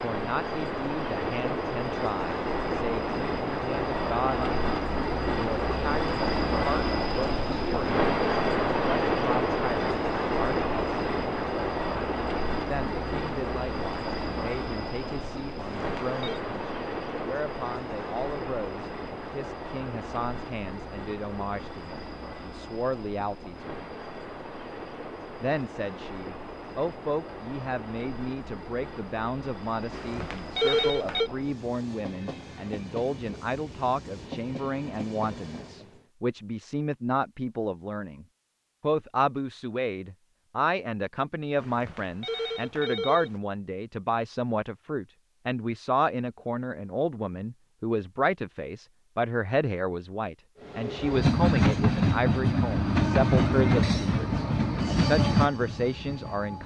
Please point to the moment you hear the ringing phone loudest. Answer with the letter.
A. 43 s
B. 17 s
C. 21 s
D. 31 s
D.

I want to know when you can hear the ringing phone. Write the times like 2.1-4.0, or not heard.
15.6-16.4, 29.9-31.3, 41.6-43.4.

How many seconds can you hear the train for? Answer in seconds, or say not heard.
42 s.